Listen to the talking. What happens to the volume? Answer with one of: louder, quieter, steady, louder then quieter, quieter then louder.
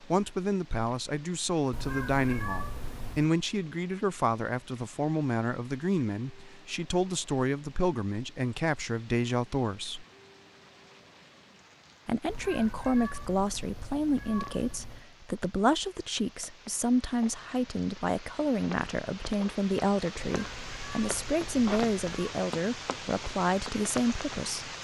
steady.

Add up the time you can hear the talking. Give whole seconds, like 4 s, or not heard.
23 s.